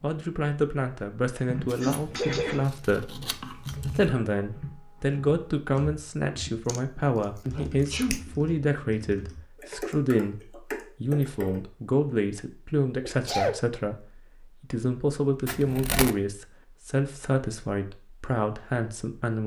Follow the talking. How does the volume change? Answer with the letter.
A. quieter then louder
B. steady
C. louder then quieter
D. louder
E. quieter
B.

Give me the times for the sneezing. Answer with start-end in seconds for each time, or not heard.
1.4-2.7, 7.5-8.2, 13.0-13.6.